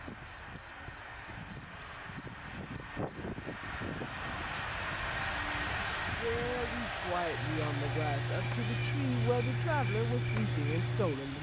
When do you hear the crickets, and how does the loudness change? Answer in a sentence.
The crickets can be heard from 0.0 to 11.2 s, getting quieter then louder.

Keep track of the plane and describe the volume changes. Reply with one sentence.
The loudness of the plane goes up, then down.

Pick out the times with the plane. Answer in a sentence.
The plane can be heard from 0.0 to 11.3 s.